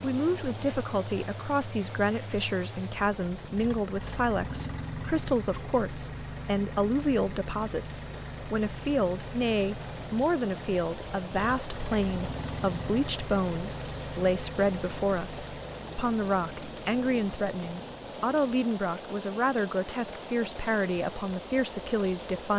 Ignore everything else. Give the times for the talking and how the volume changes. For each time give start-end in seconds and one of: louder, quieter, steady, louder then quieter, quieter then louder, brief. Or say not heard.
0.0-22.5 steady.